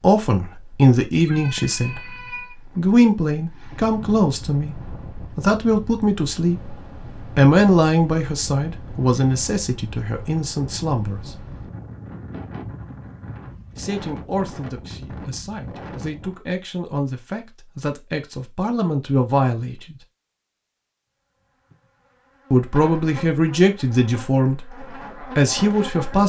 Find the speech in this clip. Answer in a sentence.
The speech can be heard from 0.0 to 2.1 s, from 2.8 to 11.4 s, from 13.8 to 19.9 s and from 22.5 to 26.2 s.